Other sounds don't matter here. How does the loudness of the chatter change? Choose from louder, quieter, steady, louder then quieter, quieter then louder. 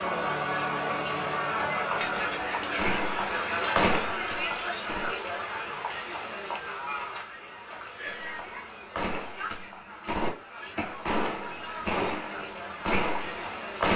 quieter.